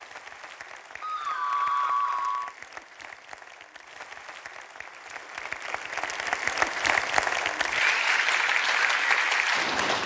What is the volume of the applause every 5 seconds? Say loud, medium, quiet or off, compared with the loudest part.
quiet, loud.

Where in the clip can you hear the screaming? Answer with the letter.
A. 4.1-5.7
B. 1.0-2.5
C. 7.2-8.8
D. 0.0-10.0
B.